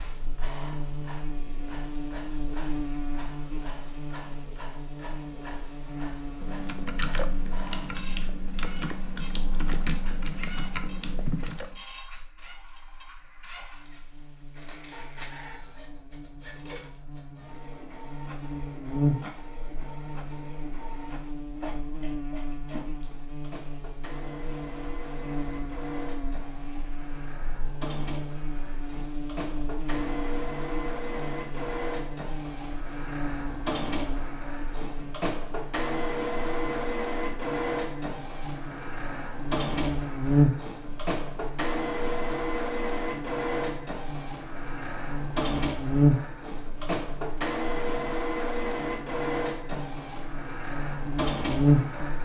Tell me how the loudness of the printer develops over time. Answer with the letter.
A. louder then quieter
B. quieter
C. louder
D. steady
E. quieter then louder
C.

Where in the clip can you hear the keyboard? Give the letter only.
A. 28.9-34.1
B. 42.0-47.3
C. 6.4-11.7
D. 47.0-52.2
C.